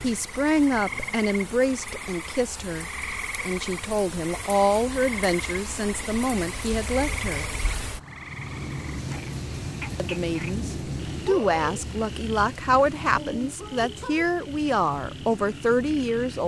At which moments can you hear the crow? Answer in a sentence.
You can't hear the crow here.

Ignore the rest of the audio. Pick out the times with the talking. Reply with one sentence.
You can hear the talking from 0.0 to 7.5 s and from 9.9 to 16.4 s.